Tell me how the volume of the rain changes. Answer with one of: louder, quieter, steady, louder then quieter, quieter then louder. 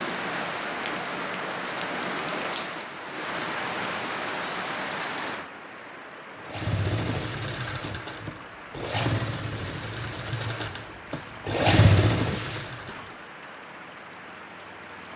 quieter.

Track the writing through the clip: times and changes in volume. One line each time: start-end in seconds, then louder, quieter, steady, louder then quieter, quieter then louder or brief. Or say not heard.
not heard.